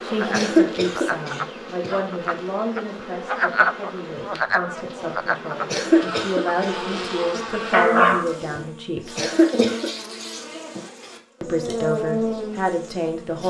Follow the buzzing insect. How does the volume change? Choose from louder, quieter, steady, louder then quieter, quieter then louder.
louder.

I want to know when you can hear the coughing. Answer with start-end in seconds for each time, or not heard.
0.3-1.9, 5.7-6.8, 9.2-9.9.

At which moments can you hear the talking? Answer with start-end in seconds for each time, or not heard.
0.0-9.2, 11.4-13.4.